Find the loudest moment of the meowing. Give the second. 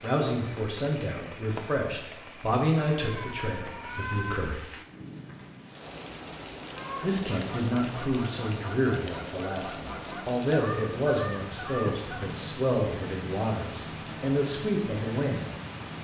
4 s.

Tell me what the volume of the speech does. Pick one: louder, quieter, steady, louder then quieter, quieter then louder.
steady.